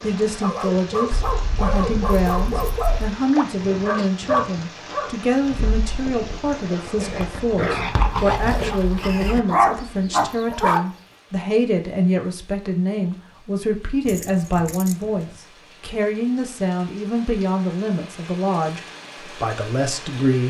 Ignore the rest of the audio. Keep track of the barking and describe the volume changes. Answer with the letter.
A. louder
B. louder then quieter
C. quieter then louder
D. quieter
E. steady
A.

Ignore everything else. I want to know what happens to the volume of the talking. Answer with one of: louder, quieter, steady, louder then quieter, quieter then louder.
steady.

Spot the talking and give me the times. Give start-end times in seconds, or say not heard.
0.0-20.4.